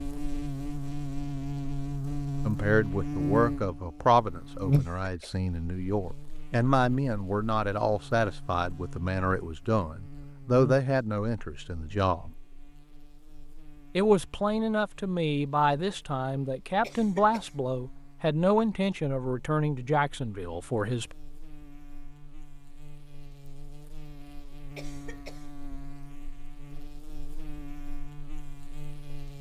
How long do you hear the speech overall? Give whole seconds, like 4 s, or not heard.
17 s.